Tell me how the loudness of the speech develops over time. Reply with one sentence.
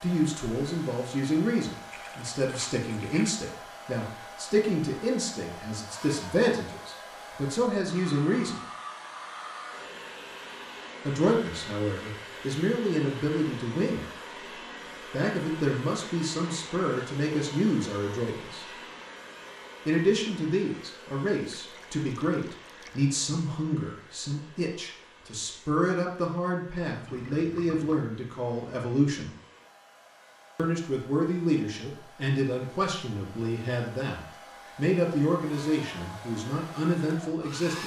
The volume of the speech stays about the same.